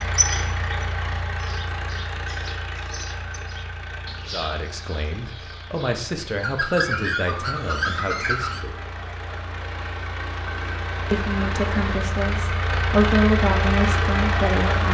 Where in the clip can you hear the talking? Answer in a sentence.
The talking can be heard from 4.2 to 8.8 s and from 11.1 to 14.8 s.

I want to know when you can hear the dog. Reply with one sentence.
The dog can't be heard in this clip.